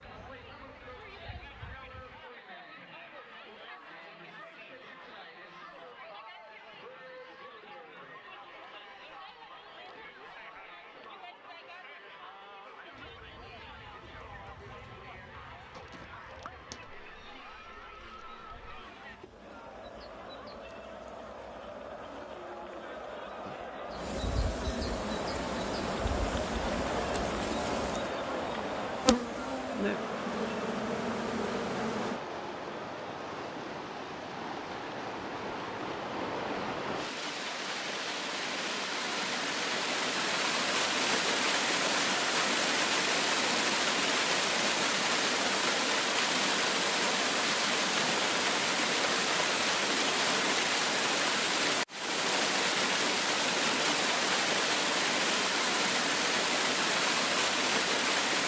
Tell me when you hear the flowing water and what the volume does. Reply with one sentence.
The flowing water can be heard from 25.1 to 58.4 s, getting louder.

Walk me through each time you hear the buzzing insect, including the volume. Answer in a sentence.
The buzzing insect can be heard briefly from 0.0 to 2.2 s; and from 12.9 to 32.2 s, getting louder.